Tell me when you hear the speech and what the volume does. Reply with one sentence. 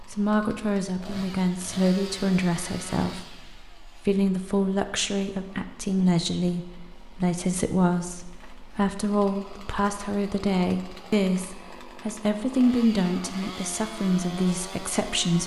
You can hear the speech from 0.0 to 15.4 s, at a steady volume.